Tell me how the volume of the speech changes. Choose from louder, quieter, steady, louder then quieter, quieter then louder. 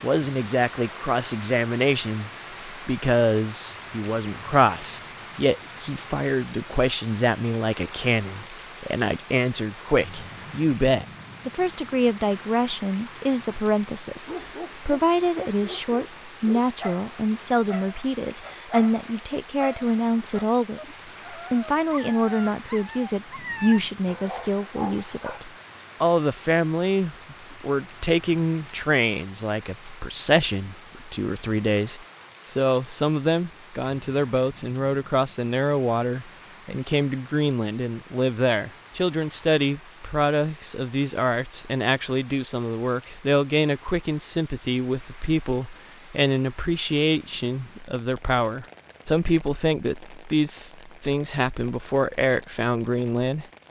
steady.